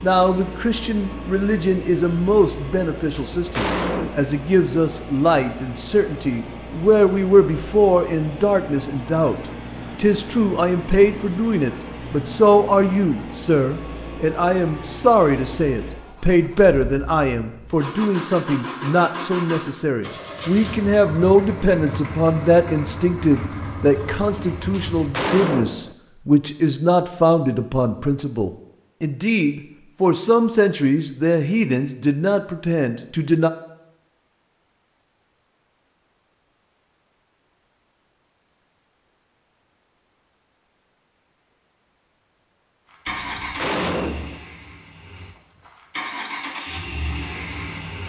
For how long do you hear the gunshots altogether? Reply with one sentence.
You can hear the gunshots for 4 seconds altogether.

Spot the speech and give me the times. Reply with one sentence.
The speech can be heard from 0.0 to 9.3 s and from 9.9 to 33.5 s.